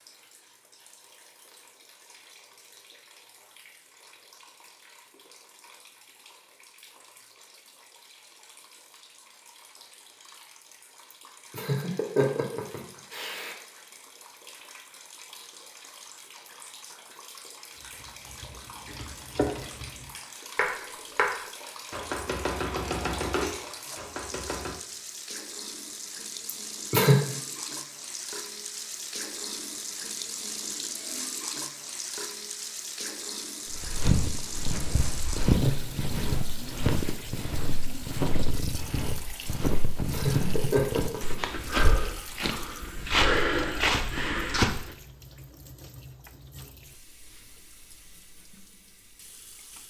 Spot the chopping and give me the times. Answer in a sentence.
The chopping can be heard from 17.9 to 24.8 s.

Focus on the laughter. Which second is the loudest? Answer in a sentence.
The volume of the laughter peaks at 27 seconds.